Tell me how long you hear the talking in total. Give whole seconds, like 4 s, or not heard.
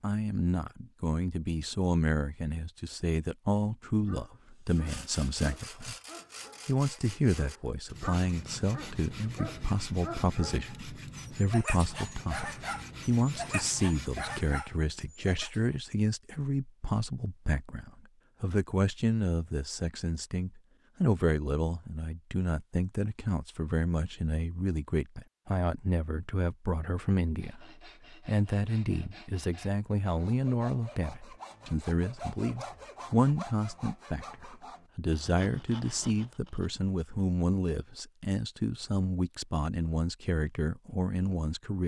41 s.